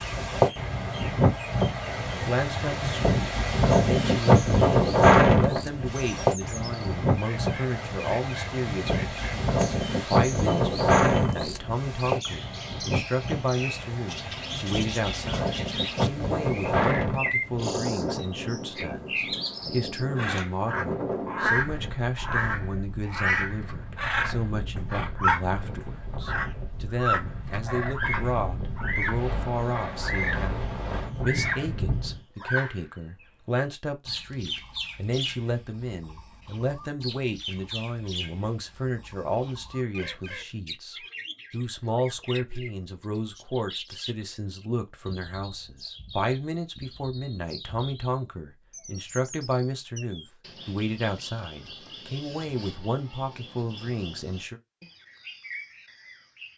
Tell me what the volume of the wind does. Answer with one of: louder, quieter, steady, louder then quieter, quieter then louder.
quieter.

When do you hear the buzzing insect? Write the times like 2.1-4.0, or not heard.
not heard.